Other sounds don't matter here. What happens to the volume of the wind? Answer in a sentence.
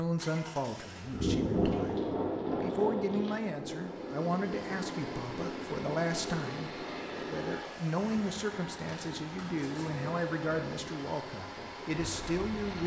The loudness of the wind goes down.